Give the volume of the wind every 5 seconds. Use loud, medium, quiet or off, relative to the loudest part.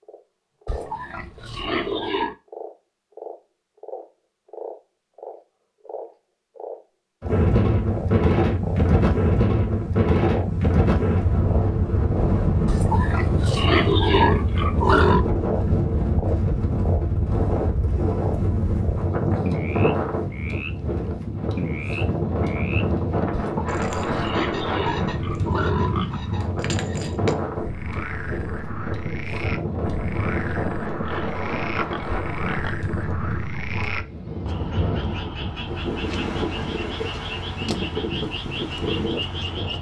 off, loud, loud, loud, medium, medium, medium, medium.